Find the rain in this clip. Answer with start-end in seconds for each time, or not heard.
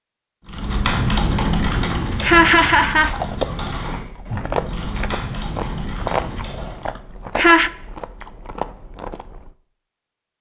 not heard.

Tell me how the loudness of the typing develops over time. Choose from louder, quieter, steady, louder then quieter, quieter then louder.
quieter.